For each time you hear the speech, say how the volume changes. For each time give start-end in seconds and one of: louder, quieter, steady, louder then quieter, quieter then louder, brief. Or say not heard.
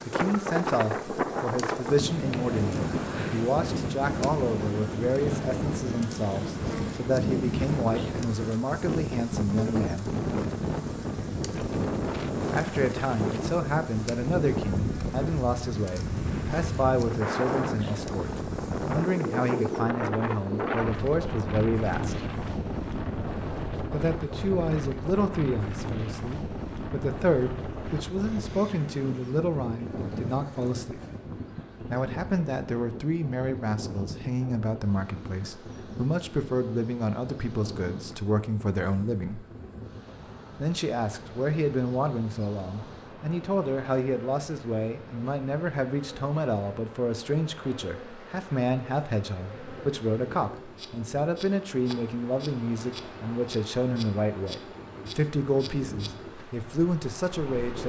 0.1-10.1 steady
12.5-22.1 steady
23.9-31.0 quieter then louder
31.8-39.5 steady
40.6-57.8 steady.